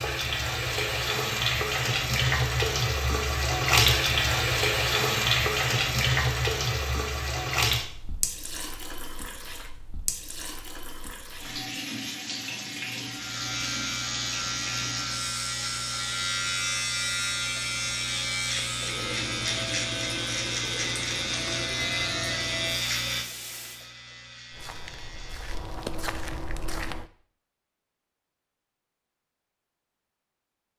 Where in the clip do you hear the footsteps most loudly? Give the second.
26 s.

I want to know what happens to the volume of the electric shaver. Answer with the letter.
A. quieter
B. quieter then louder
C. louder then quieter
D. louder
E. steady
A.